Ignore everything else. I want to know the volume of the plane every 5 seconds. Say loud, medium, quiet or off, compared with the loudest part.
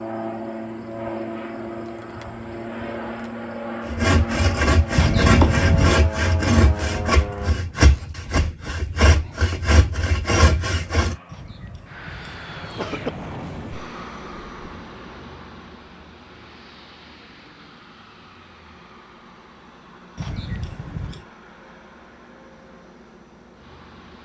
loud, loud, medium, quiet, quiet.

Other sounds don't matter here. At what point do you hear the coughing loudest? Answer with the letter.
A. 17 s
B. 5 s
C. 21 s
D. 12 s
B.